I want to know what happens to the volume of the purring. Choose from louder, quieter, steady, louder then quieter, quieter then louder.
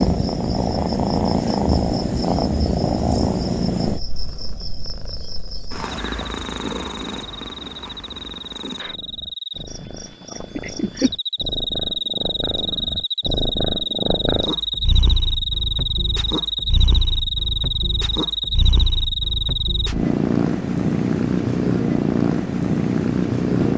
quieter then louder.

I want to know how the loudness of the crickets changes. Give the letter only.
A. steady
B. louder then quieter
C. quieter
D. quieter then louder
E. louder
E.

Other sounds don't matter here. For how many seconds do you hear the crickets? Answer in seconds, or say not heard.
20 s.